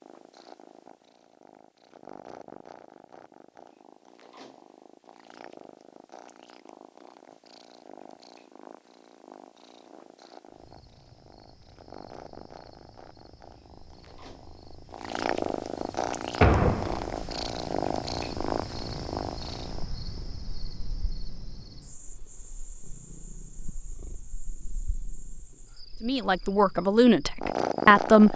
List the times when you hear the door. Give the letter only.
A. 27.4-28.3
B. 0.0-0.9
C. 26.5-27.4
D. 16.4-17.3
D.